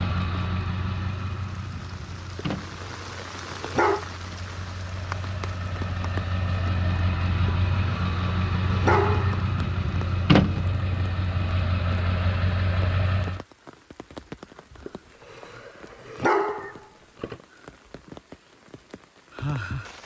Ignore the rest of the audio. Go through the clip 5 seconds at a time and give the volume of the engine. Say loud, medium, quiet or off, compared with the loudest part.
medium, loud, loud, off.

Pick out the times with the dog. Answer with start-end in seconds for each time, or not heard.
2.4-4.0, 7.5-9.4, 14.8-17.4.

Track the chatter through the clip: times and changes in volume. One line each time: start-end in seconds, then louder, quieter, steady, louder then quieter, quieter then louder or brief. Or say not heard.
not heard.